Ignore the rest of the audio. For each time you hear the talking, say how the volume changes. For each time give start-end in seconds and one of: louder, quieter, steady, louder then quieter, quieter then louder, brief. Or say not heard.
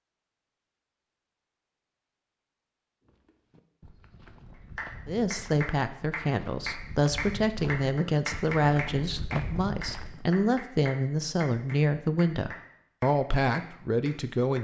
5.0-14.5 steady.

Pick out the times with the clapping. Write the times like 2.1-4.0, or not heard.
4.5-14.5.